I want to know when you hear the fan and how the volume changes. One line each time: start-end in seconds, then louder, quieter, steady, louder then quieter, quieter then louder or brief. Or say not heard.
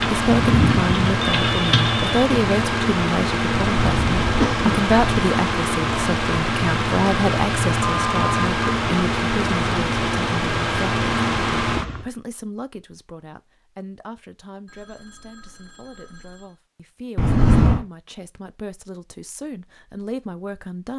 0.0-12.1 steady.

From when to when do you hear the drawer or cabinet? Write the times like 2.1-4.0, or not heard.
not heard.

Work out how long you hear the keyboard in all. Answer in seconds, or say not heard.
2 s.